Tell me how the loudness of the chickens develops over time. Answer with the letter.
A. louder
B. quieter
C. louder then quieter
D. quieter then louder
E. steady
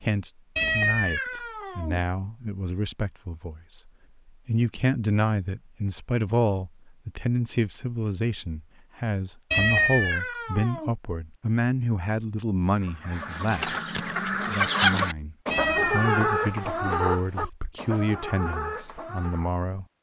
C.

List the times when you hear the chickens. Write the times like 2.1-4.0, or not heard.
12.8-19.5.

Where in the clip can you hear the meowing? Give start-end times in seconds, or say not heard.
0.6-2.0, 9.5-10.9, 15.5-17.5.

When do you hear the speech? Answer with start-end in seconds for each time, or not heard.
0.0-13.8, 14.4-19.9.